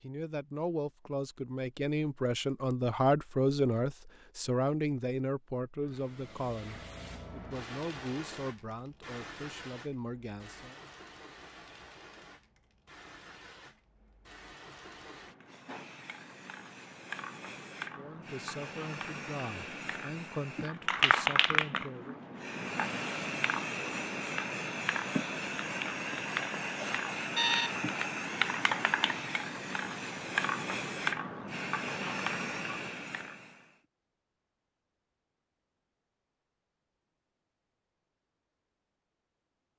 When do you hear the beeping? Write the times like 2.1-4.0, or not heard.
26.8-27.8.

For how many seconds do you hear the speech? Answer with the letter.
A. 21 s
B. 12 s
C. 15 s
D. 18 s
C.